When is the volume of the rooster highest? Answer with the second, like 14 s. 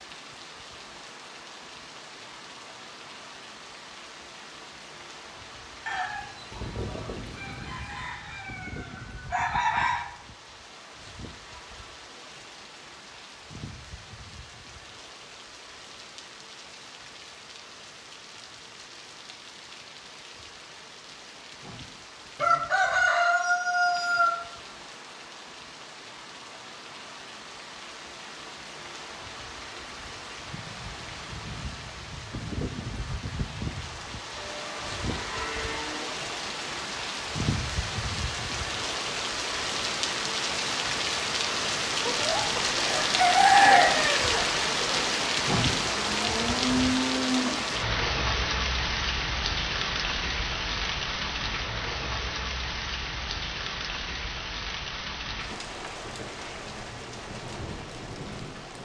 44 s.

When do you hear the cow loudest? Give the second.
47 s.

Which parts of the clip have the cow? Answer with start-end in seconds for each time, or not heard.
6.5-8.2, 34.4-36.2, 45.8-47.7.